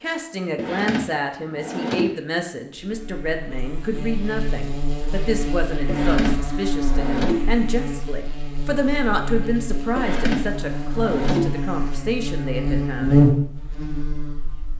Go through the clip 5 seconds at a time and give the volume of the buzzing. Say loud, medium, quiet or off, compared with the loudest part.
medium, medium, loud.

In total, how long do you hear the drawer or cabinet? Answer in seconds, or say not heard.
5 s.